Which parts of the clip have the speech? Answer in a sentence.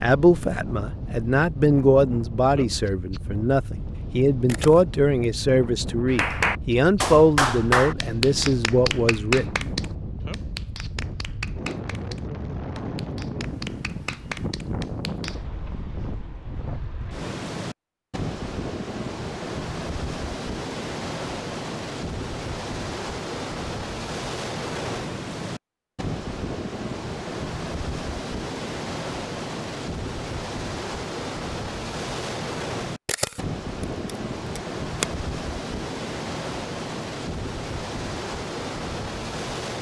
The speech can be heard from 0.0 to 9.7 s.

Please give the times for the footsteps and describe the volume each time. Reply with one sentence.
You can't hear the footsteps here.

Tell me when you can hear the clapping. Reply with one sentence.
The clapping can be heard from 6.0 to 15.3 s.